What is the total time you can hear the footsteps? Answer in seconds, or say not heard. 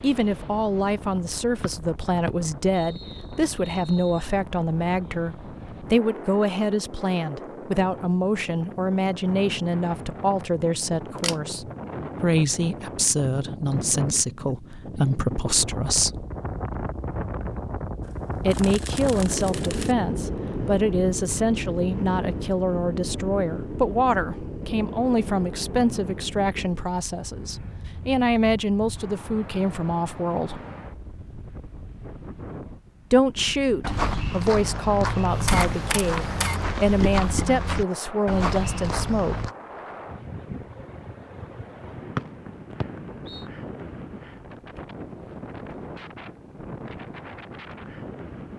6 s.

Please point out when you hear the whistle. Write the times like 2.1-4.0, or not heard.
1.6-4.3, 42.1-43.5.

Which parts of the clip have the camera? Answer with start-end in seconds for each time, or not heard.
11.1-11.6, 18.1-19.9, 35.5-36.6.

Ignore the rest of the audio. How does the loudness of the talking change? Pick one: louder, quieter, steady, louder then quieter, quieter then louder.
steady.